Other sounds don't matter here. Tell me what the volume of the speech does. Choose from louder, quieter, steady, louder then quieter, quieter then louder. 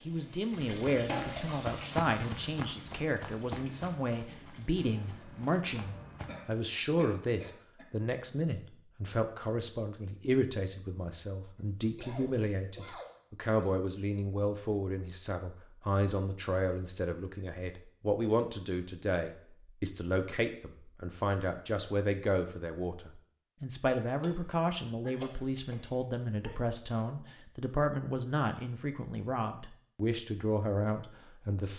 steady.